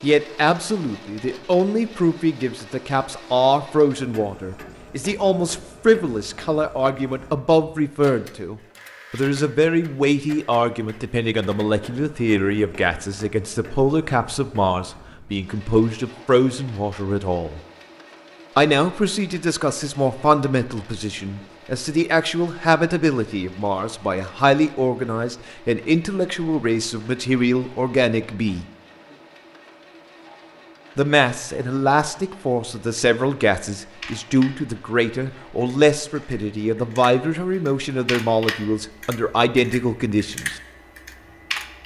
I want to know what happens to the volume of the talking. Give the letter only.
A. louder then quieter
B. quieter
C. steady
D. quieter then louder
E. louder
C.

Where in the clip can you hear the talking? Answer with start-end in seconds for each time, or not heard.
0.0-17.6, 18.6-28.6, 30.9-40.5.